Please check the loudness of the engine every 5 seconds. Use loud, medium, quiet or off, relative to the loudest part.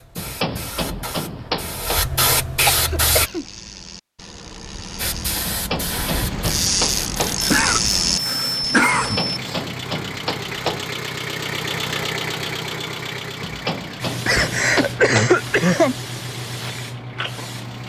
off, medium, loud, medium.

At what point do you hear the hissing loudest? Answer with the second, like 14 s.
3 s.